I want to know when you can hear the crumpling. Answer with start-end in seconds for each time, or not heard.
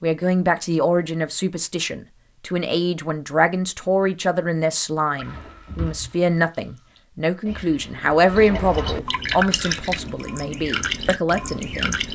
5.2-6.2.